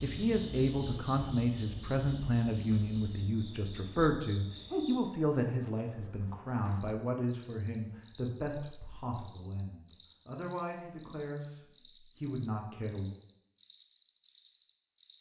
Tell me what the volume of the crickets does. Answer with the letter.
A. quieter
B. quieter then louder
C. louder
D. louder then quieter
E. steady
C.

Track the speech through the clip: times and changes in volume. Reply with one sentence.
You can hear the speech from 0.0 to 13.1 s, getting quieter.